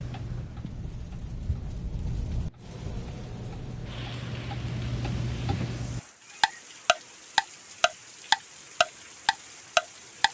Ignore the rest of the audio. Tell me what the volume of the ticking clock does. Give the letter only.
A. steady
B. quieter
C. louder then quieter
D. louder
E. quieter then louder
D.